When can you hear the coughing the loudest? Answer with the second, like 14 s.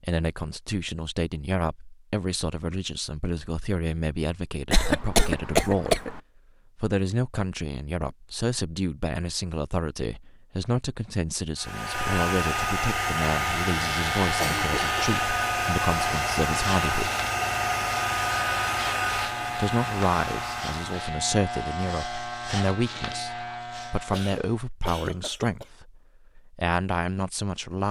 5 s.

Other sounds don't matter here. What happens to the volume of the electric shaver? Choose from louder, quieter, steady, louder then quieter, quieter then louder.
steady.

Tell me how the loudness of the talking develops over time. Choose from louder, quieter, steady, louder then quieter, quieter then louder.
steady.